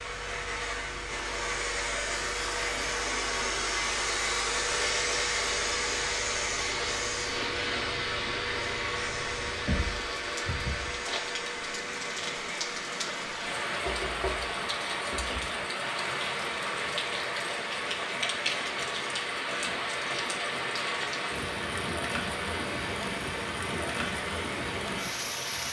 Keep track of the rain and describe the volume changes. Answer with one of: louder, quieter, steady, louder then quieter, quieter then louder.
louder.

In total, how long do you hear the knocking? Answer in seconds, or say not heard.
2 s.